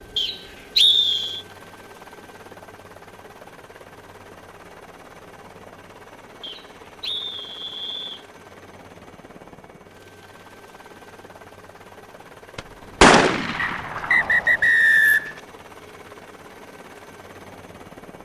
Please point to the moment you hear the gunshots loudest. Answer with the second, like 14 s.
13 s.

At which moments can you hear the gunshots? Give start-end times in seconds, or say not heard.
12.6-14.6.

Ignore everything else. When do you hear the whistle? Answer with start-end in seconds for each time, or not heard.
0.1-1.4, 6.4-8.2, 13.6-15.4.